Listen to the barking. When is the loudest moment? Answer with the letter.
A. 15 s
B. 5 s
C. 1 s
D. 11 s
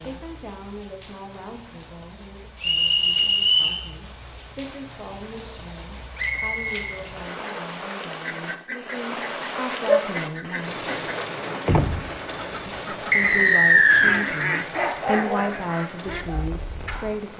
A.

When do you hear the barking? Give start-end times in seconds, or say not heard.
14.7-17.2.